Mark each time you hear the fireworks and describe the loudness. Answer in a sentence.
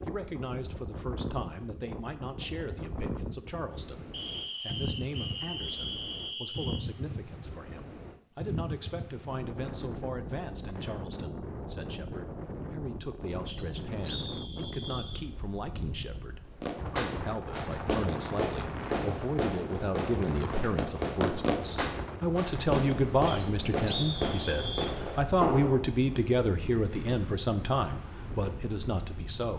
The fireworks can be heard from 16.6 to 25.9 s, at a steady volume.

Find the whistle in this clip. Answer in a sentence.
You can hear the whistle from 4.1 to 6.9 s, from 13.4 to 15.2 s and from 23.2 to 24.9 s.